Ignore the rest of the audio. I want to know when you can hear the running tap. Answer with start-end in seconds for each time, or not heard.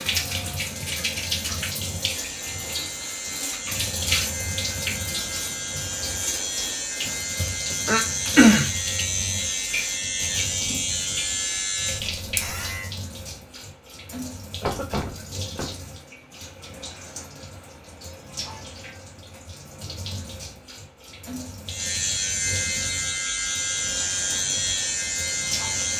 0.0-25.9.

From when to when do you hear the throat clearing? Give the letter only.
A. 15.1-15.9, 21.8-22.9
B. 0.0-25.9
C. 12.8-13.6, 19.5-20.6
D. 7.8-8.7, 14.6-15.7
D.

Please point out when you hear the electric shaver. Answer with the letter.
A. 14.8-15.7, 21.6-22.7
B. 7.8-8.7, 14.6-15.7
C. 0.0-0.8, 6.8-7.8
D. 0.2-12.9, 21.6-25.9
D.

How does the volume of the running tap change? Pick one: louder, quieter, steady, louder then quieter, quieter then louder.
quieter.